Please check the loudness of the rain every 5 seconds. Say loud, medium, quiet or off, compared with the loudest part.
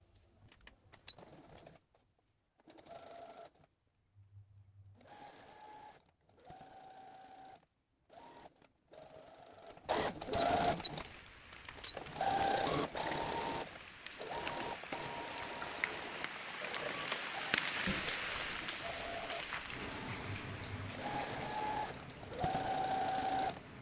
off, off, medium, loud, medium.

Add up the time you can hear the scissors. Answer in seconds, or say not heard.
2 s.